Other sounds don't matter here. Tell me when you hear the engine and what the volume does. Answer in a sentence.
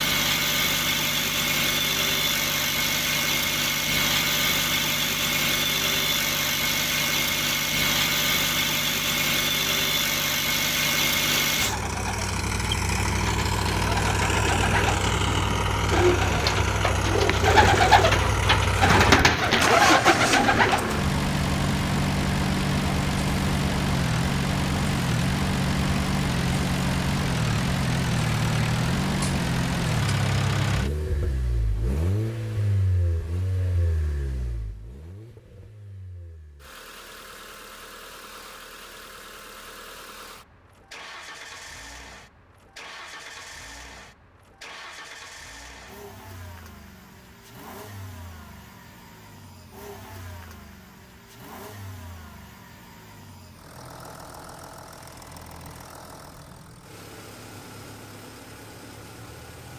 You can hear the engine from 0.0 to 59.7 s, getting quieter.